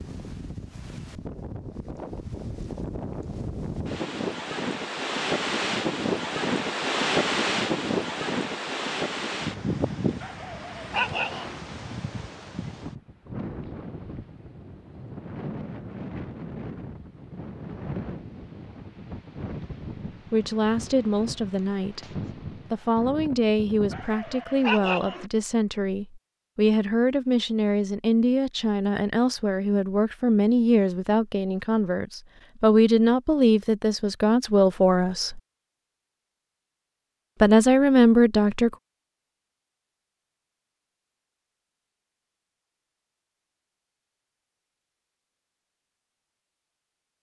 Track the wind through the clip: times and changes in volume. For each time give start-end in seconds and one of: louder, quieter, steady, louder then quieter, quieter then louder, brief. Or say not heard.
0.0-24.3 louder then quieter.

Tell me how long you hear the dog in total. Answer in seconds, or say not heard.
3 s.